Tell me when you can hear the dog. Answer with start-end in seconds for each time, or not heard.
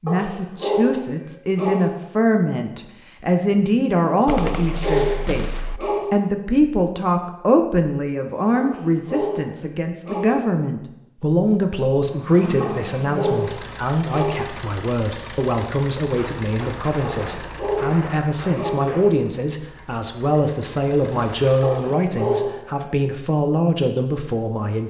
0.1-1.9, 4.2-6.2, 8.6-10.4, 12.6-14.5, 17.0-18.9, 21.6-22.8.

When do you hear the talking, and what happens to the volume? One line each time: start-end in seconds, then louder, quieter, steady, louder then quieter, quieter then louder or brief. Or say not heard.
0.0-24.8 steady.